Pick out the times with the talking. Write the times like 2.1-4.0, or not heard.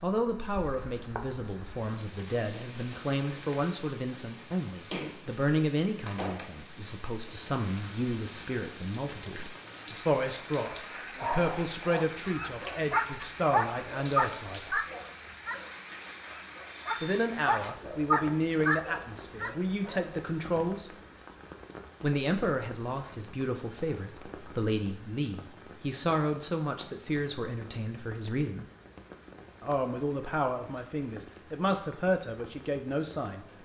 0.0-14.8, 17.0-20.9, 22.0-28.6, 29.6-33.5.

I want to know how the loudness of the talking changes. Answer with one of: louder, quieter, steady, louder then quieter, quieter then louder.
steady.